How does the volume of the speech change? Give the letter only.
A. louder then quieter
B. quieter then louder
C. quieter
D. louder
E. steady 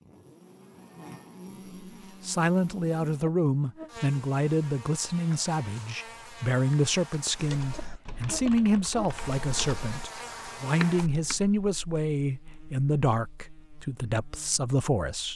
E.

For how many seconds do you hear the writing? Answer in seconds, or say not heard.
not heard.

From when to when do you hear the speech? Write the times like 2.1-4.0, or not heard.
2.2-15.3.